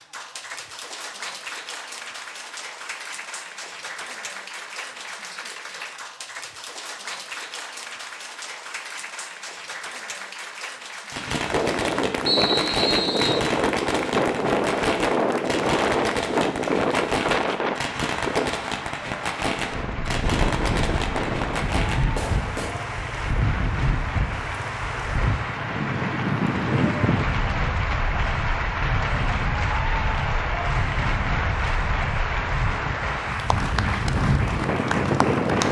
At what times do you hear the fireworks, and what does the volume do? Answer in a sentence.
The fireworks can be heard from 11.1 to 22.8 s, at a steady volume.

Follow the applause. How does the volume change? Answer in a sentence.
The volume of the applause goes up.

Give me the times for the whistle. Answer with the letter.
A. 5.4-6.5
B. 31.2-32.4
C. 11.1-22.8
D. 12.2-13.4
D.